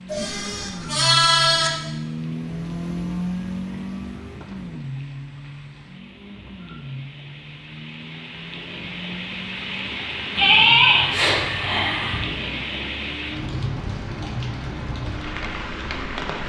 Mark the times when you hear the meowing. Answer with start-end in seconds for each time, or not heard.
not heard.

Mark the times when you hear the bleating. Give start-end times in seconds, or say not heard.
0.1-1.7, 10.3-12.2.